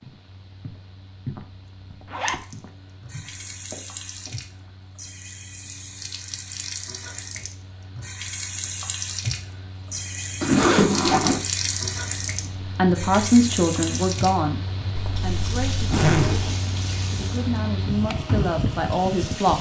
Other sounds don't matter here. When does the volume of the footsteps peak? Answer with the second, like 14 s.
1 s.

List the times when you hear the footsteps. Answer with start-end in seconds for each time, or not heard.
0.0-4.7.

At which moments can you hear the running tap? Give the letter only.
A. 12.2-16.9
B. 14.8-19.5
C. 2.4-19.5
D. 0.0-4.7
C.